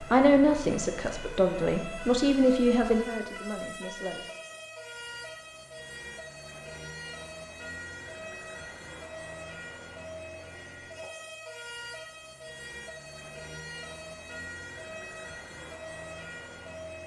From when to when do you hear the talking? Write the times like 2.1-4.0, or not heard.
0.0-4.2.